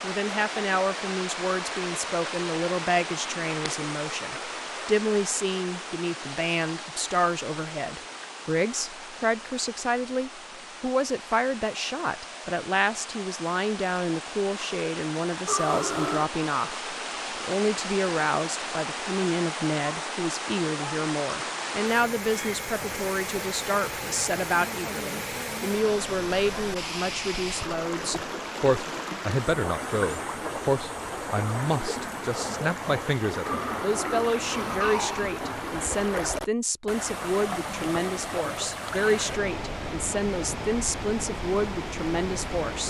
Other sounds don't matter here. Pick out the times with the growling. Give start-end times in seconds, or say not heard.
15.4-16.3, 33.5-35.3.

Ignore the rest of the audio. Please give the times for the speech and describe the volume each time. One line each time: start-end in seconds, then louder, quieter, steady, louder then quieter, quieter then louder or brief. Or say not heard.
0.0-42.8 steady.